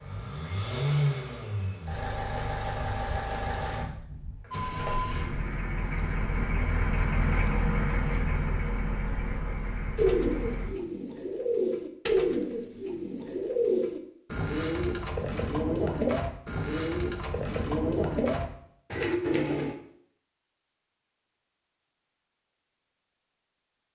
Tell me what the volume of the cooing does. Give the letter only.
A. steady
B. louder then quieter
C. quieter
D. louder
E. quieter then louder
A.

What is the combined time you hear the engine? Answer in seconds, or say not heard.
11 s.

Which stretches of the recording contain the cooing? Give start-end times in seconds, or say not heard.
9.9-19.8.